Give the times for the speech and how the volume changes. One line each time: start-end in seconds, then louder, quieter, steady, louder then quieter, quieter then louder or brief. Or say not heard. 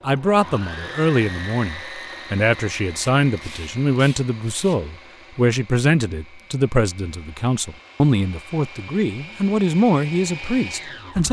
0.0-11.2 steady.